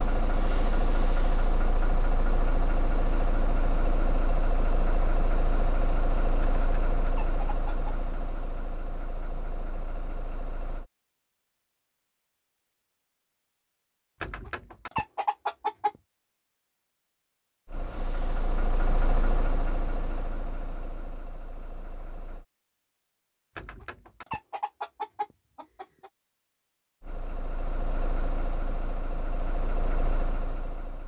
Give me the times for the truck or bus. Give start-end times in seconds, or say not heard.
0.0-10.9, 17.6-22.4, 27.0-31.0.